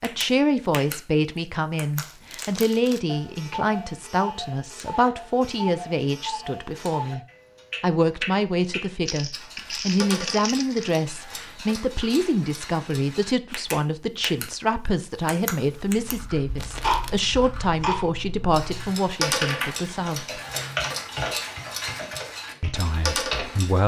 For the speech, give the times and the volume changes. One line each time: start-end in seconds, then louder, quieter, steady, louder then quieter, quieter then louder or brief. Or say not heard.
0.0-20.4 steady
22.6-23.8 brief.